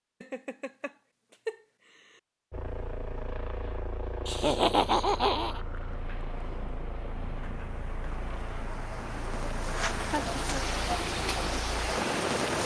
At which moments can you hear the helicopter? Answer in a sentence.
You can hear the helicopter from 2.5 to 12.6 s.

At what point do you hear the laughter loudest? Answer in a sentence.
The loudest moment of the laughter is at 5 seconds.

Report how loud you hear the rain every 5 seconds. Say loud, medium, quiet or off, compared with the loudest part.
off, medium, loud.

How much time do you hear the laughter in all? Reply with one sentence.
The laughter can be heard for 4 seconds in total.